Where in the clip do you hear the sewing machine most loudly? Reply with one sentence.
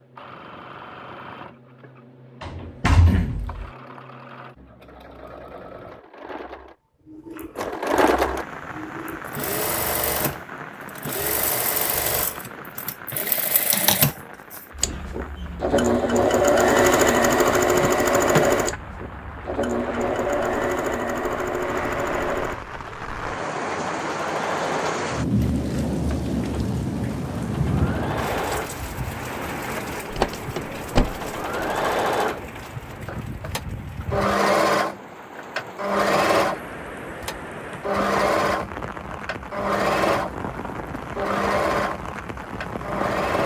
The loudest moment of the sewing machine is at 17 seconds.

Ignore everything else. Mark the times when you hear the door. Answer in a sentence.
The door can be heard from 2.4 to 3.7 s, from 17.7 to 18.6 s and from 30.1 to 31.6 s.